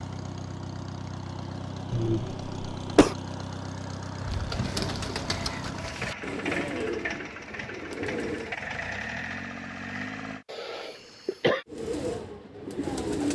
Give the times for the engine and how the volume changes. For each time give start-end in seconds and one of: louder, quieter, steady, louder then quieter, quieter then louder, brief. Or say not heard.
0.0-10.4 steady.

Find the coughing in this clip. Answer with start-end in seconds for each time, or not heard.
1.9-3.1, 10.4-11.7.